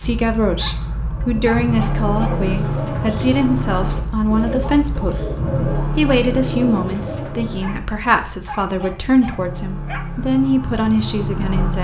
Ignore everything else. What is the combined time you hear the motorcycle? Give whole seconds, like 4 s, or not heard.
12 s.